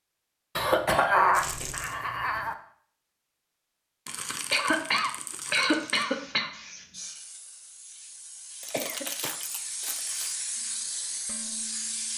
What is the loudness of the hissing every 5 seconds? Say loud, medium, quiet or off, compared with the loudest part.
off, medium, loud.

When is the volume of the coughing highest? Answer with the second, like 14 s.
1 s.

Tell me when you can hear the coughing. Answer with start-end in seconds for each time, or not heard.
0.6-2.5, 4.5-6.5, 8.7-9.3.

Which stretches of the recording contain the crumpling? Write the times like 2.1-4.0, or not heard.
1.3-1.9, 4.0-6.0, 8.6-10.3.